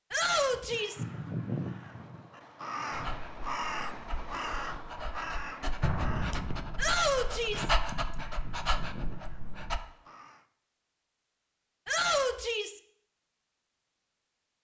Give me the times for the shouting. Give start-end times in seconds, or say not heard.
0.1-1.1, 6.8-7.7, 11.8-12.8.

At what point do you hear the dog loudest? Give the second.
8 s.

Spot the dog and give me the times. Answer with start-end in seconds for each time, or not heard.
2.9-9.8.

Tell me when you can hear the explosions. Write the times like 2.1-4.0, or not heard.
5.8-7.0.